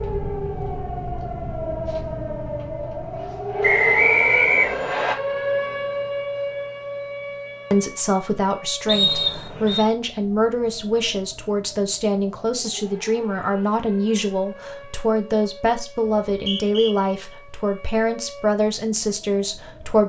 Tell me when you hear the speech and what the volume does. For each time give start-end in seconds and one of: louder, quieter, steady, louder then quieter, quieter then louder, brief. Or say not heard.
7.7-20.0 steady.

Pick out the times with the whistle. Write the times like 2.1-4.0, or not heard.
3.6-5.2, 8.8-9.8, 16.3-16.9.